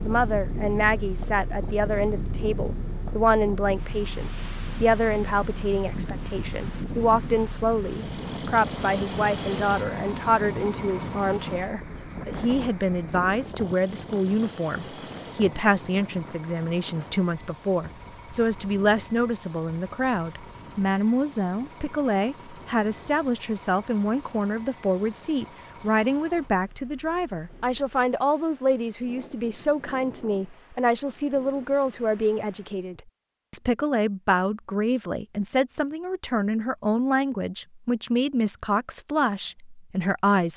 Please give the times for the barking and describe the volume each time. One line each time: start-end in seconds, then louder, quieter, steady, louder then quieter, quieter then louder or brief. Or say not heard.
not heard.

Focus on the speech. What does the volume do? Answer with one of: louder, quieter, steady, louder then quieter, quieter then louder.
steady.